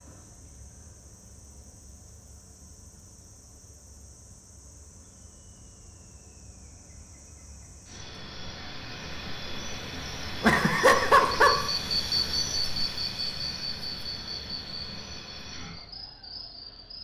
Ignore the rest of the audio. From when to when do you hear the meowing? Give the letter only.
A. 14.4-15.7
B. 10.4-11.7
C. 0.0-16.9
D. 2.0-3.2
B.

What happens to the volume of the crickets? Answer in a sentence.
The loudness of the crickets goes up, then down.